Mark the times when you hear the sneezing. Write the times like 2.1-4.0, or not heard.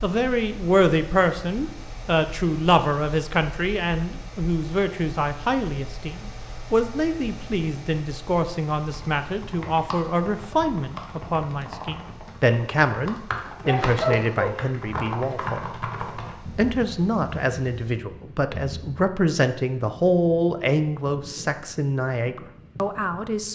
13.6-14.6.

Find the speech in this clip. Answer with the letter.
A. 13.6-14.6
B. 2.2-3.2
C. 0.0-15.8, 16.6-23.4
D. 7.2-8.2
C.